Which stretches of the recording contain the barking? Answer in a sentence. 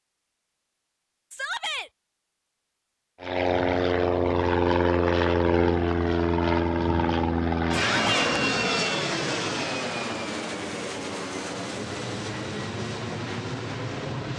The barking can't be heard in this clip.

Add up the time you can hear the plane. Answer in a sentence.
The plane can be heard for 11 seconds in total.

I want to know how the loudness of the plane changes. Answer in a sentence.
The loudness of the plane goes down.